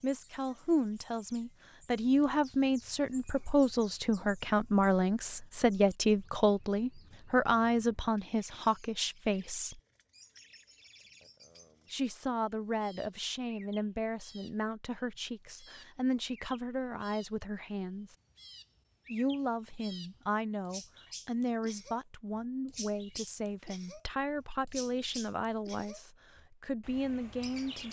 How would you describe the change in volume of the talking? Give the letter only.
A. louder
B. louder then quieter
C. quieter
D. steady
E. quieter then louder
C.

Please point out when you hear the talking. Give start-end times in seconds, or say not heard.
0.0-9.8, 11.9-18.1, 19.1-27.8.